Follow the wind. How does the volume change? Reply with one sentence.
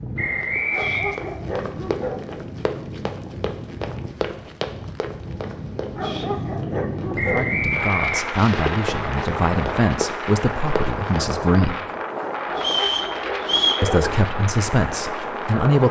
The loudness of the wind goes up.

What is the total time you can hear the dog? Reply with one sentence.
The dog can be heard for 5 seconds in total.